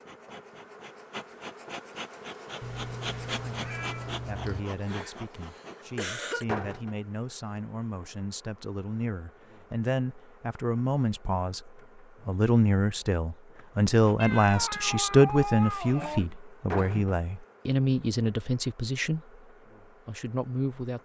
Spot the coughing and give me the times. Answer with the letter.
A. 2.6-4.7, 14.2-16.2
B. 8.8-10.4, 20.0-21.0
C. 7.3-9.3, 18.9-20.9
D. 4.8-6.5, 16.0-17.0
D.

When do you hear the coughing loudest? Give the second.
6 s.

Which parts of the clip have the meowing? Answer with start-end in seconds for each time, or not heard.
2.6-4.7, 14.2-16.2.